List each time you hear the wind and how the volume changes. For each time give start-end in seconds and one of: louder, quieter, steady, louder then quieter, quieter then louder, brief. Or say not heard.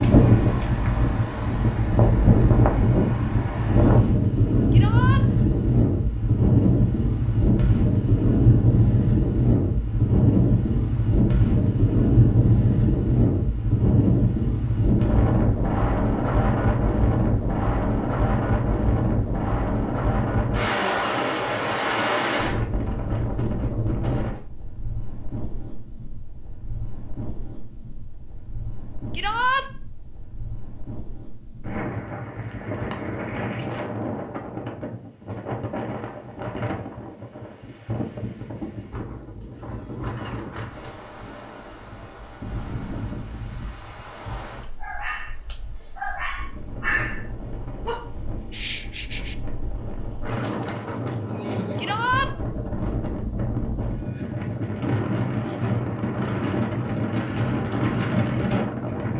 0.0-59.1 quieter then louder.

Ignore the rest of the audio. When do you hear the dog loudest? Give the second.
47 s.